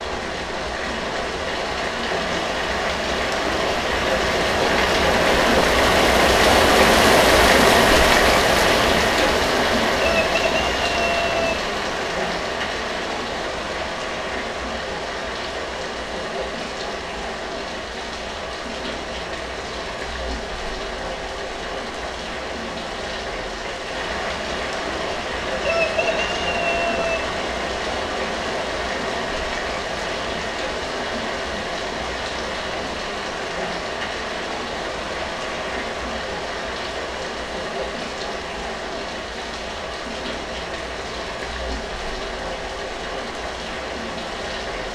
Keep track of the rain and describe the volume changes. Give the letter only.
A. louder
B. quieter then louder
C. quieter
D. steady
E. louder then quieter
C.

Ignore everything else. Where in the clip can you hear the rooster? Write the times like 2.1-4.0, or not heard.
10.0-11.6, 25.6-27.2.